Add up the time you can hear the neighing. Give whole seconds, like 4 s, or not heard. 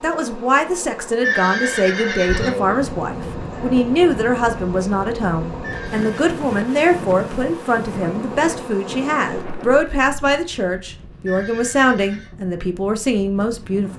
3 s.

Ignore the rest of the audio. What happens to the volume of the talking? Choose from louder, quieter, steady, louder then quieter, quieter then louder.
steady.